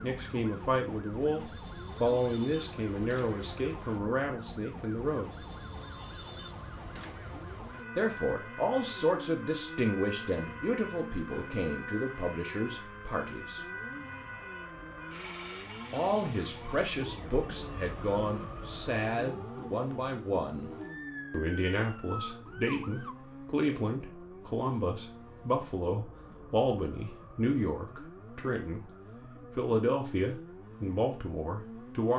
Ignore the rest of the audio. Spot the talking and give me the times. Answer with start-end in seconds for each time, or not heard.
0.0-5.3, 8.0-13.6, 15.9-20.7, 21.3-28.8, 29.6-32.1.